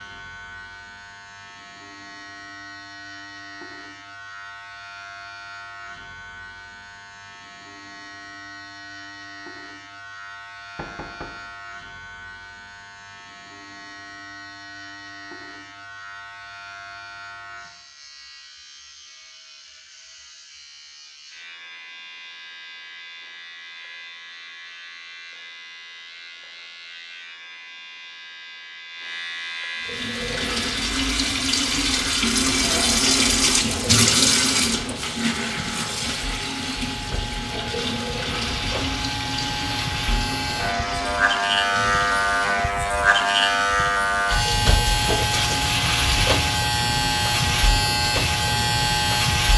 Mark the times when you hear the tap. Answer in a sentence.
You can hear the tap from 29.8 to 49.5 s.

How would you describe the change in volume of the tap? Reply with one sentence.
The volume of the tap goes down.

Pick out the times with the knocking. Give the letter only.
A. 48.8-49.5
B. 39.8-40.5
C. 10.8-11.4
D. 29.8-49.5
C.